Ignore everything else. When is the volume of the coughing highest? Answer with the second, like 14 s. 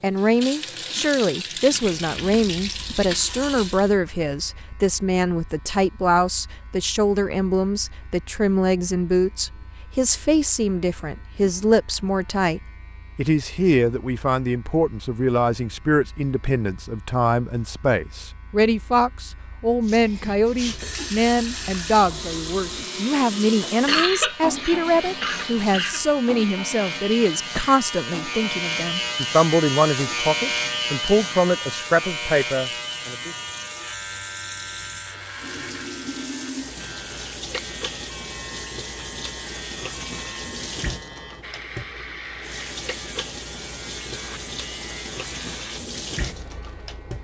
24 s.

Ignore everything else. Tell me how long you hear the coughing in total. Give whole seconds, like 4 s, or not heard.
2 s.